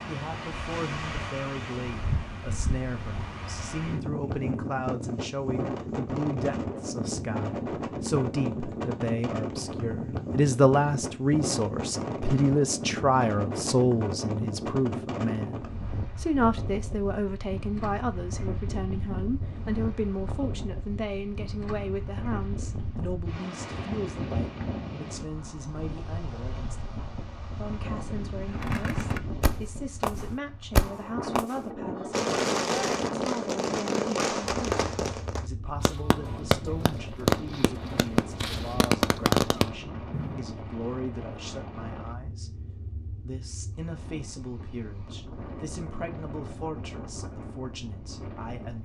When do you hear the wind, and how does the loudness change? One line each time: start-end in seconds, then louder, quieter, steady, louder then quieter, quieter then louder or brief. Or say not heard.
0.0-48.7 quieter.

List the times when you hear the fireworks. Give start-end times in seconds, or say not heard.
28.4-40.5.